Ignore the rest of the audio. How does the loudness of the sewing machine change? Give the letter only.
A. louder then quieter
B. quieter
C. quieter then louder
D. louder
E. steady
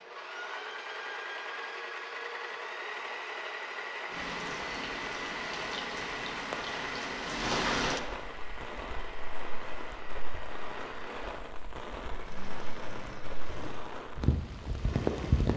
B.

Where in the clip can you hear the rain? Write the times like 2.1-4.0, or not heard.
4.1-15.5.